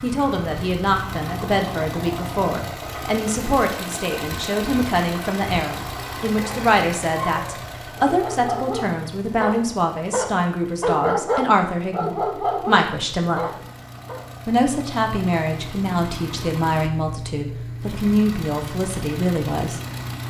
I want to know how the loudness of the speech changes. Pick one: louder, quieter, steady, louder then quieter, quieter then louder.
steady.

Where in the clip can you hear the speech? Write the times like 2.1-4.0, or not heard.
0.0-13.4, 14.4-19.8.